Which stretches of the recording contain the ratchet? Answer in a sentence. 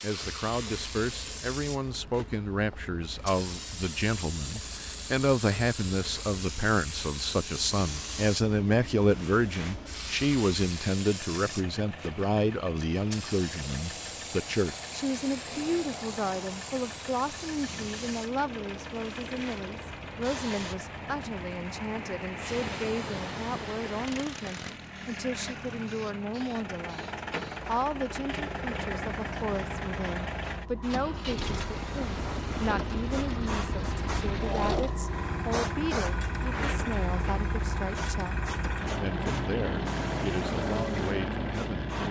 The ratchet can't be heard in this clip.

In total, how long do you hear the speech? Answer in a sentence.
The speech can be heard for 42 seconds in total.